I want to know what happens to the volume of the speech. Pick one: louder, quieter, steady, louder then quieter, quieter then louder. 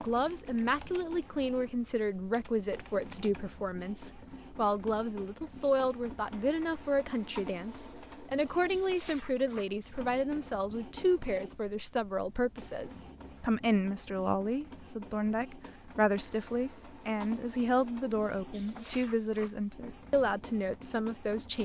steady.